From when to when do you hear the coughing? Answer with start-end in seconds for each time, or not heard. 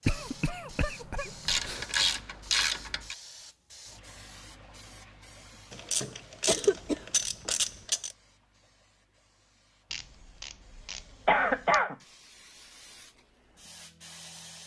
0.1-1.9, 6.5-7.0, 11.2-11.9.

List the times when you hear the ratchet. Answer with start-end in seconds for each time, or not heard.
1.4-3.1, 5.7-8.2, 9.9-11.8.